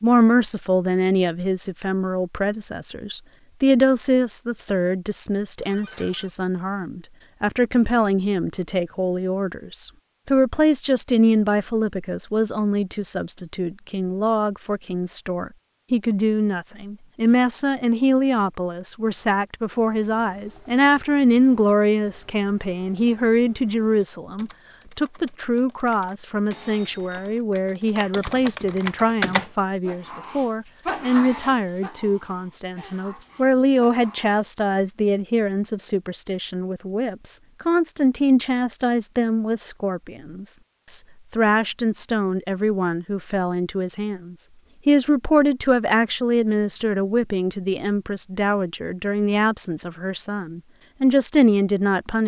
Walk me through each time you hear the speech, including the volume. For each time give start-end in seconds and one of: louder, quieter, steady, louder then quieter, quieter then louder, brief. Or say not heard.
0.0-52.2 steady.